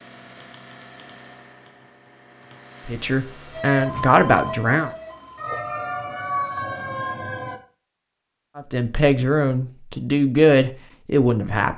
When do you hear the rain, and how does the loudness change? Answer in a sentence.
The rain can't be heard in this clip.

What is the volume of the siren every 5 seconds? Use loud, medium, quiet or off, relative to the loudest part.
loud, loud, off.